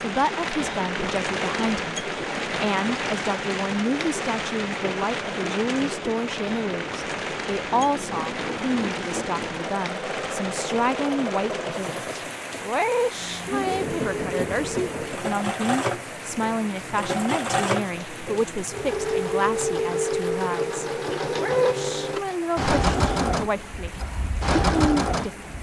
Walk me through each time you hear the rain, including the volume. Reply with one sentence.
You can hear the rain from 0.0 to 25.5 s, getting quieter.